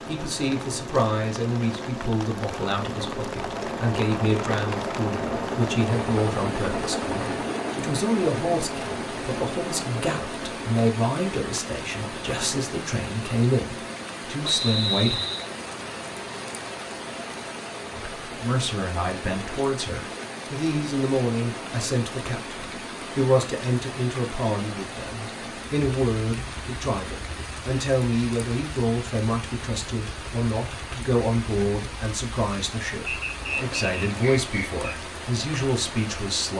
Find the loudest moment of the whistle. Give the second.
15 s.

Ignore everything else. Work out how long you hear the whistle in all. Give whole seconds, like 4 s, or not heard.
3 s.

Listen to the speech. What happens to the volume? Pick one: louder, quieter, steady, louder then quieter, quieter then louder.
steady.